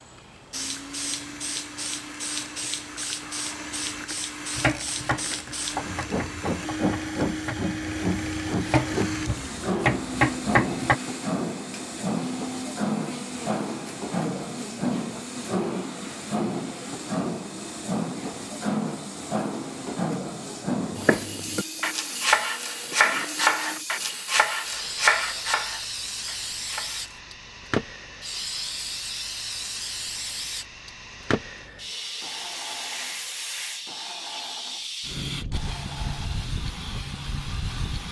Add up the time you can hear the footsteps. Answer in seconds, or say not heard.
not heard.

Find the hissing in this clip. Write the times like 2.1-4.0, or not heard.
0.0-38.0.